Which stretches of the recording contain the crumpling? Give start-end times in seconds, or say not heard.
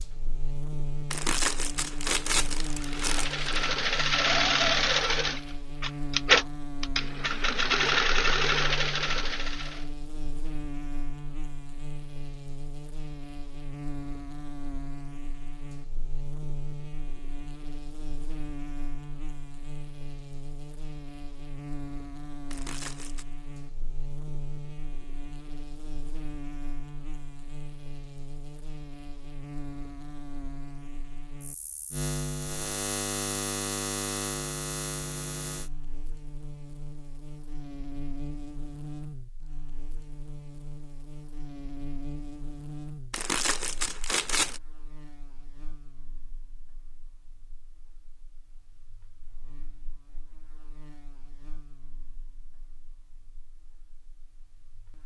1.1-3.5, 22.5-23.2, 43.1-44.6.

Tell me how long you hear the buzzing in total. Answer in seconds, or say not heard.
55 s.